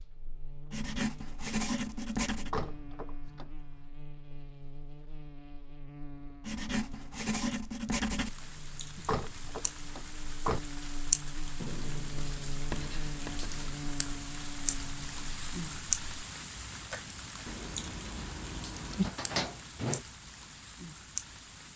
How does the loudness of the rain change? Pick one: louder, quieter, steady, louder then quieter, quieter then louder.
louder then quieter.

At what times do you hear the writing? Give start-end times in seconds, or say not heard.
0.7-2.5, 6.5-8.3, 11.6-13.8, 17.4-19.1.